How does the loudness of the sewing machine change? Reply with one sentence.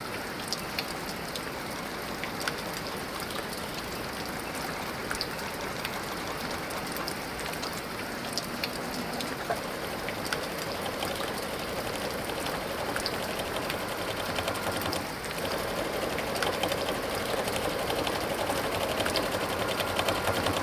The loudness of the sewing machine goes up.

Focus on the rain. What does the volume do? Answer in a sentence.
The volume of the rain stays about the same.